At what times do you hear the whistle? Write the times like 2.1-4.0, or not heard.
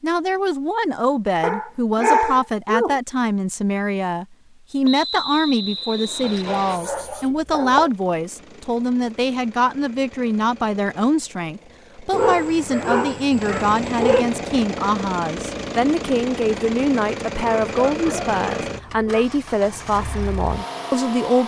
4.8-6.8.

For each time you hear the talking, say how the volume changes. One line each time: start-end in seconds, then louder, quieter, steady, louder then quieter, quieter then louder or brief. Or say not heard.
0.0-21.4 steady.